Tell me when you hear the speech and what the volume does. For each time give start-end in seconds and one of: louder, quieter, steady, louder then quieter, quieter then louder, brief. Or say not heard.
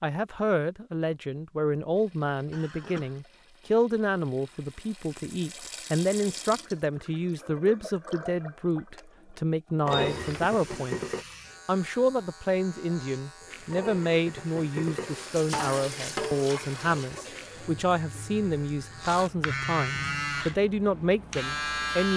0.0-11.0 steady
11.7-22.1 steady.